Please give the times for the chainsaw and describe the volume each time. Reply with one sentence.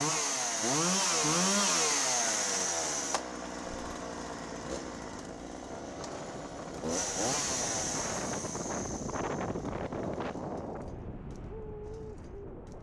You can hear the chainsaw from 0.0 to 12.7 s, getting quieter.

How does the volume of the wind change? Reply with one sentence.
The loudness of the wind goes up, then down.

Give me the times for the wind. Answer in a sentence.
You can hear the wind from 3.8 to 12.7 s.